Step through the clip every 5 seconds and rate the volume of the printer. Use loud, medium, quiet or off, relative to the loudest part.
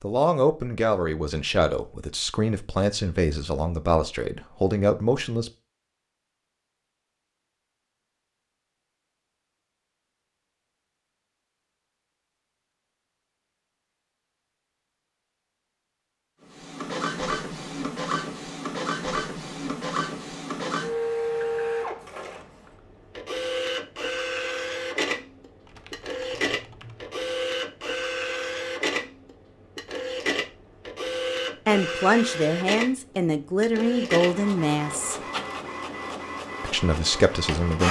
off, off, off, loud, loud, loud, loud, loud.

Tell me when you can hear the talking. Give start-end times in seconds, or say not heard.
0.0-5.5, 31.6-35.1, 36.6-37.8.